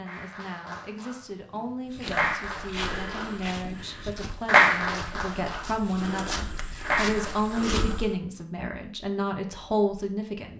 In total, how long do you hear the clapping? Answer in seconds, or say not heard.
8 s.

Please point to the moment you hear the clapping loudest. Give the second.
5 s.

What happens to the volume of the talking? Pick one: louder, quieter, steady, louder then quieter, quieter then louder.
louder.